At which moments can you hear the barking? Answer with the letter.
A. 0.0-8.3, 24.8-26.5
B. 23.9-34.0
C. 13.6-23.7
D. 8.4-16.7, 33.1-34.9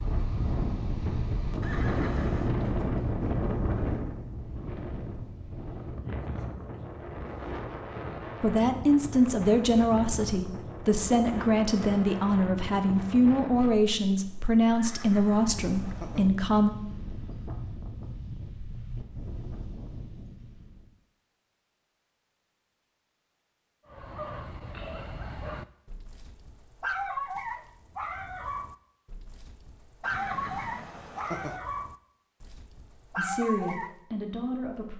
B.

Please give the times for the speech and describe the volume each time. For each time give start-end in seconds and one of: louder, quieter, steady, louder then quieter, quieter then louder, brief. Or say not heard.
8.4-16.7 steady
33.1-34.9 brief.